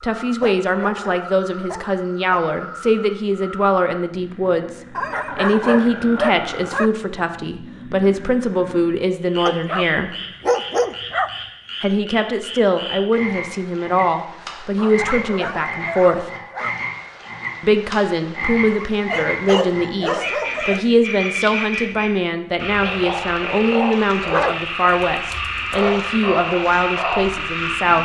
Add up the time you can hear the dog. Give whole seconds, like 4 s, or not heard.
12 s.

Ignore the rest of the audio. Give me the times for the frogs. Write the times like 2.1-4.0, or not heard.
0.1-27.9.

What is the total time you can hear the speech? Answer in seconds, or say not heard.
25 s.